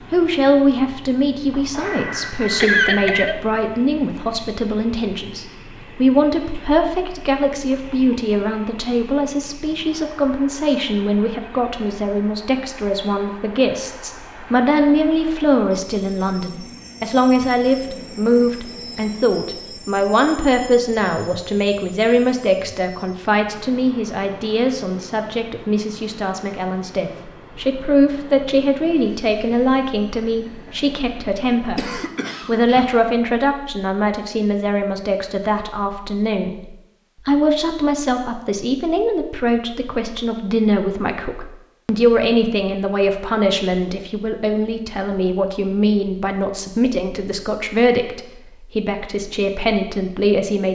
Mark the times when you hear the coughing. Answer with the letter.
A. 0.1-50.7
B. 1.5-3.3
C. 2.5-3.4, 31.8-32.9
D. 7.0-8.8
C.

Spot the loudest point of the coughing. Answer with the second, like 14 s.
3 s.